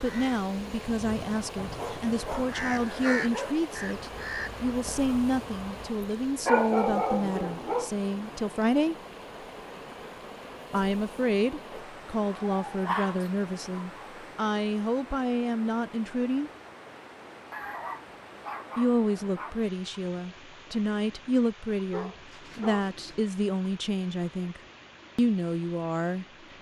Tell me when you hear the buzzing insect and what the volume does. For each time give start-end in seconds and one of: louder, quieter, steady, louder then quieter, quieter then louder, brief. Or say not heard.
not heard.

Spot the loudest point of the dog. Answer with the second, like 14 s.
7 s.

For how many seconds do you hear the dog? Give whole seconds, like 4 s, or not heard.
9 s.